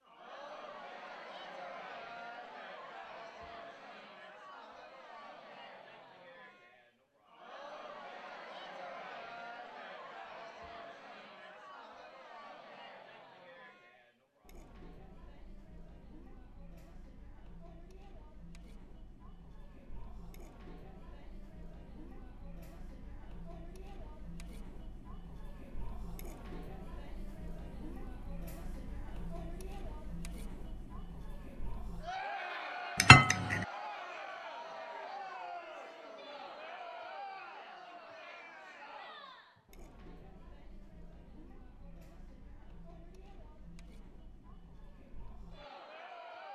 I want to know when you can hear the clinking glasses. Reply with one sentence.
You can hear the clinking glasses from 33.0 to 33.6 s.